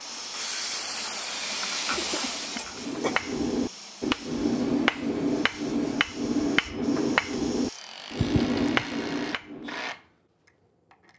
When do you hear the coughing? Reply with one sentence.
The coughing can be heard from 1.9 to 3.2 s and from 8.2 to 8.8 s.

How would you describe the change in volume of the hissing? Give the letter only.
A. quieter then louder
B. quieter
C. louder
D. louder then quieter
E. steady
B.